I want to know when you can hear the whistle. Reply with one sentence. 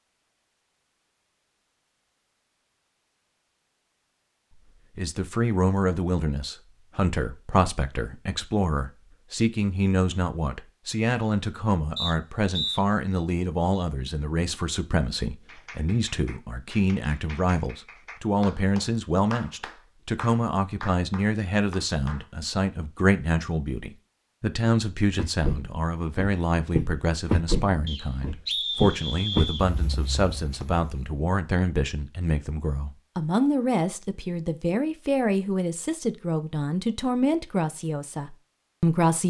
The whistle can be heard from 11.9 to 12.8 s and from 27.9 to 29.6 s.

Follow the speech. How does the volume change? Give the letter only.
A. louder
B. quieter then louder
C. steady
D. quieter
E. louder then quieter
C.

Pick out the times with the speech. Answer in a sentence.
You can hear the speech from 5.0 to 39.2 s.